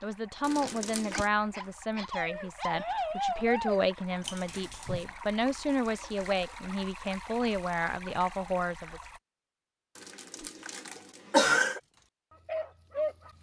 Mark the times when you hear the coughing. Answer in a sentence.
The coughing can be heard from 0.4 to 1.3 s, from 5.5 to 6.6 s and from 9.9 to 11.8 s.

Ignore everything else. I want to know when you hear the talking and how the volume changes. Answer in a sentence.
The talking can be heard from 0.0 to 9.0 s, at a steady volume.